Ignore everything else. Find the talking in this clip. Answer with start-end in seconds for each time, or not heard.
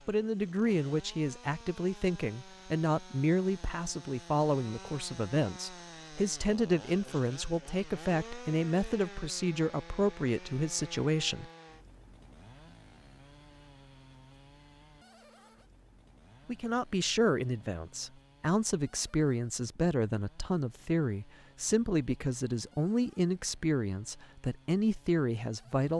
0.1-11.5, 16.4-25.9.